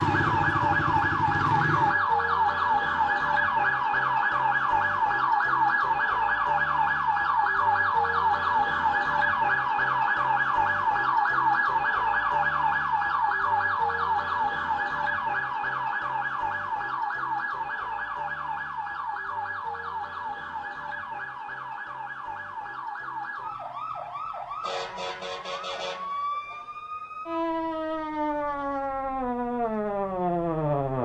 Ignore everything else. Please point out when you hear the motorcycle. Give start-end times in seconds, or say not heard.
0.0-1.9.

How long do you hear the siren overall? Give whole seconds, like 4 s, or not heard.
31 s.